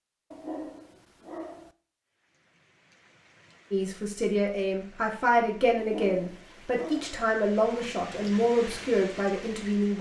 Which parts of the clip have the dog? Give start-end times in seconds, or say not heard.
0.3-1.8, 5.8-7.2.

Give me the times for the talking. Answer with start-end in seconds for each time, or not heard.
3.7-9.9.